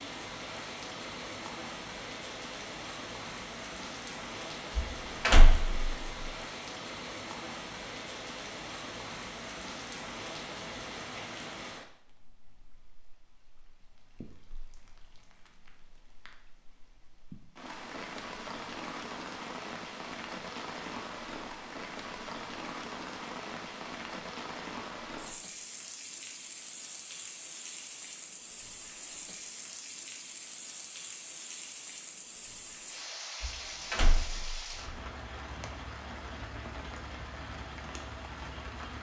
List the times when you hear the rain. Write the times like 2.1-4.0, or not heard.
0.0-38.9.